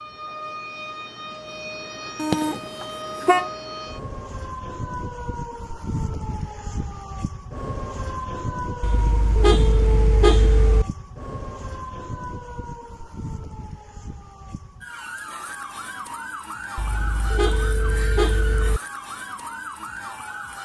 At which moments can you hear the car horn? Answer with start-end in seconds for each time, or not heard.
2.1-3.5, 8.8-10.8, 16.8-18.8.